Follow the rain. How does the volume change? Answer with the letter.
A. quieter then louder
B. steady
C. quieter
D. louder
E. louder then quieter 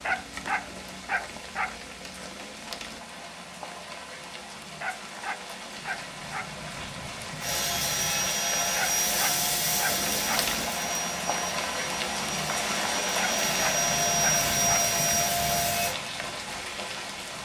D.